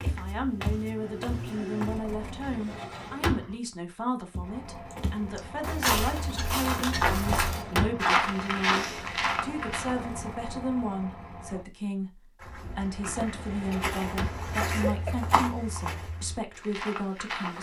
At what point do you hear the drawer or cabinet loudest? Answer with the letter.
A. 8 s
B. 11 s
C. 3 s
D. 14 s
A.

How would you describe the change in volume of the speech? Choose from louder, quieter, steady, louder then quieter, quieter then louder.
steady.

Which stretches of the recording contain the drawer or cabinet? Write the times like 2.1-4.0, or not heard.
2.4-3.5, 7.0-8.1, 13.3-14.5.